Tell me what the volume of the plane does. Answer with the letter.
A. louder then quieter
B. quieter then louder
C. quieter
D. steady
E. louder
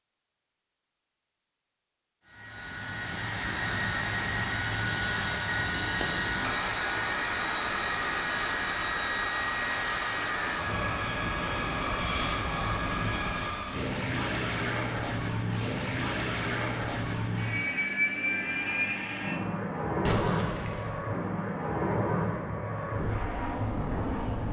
D.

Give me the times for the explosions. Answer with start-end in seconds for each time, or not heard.
20.1-20.9.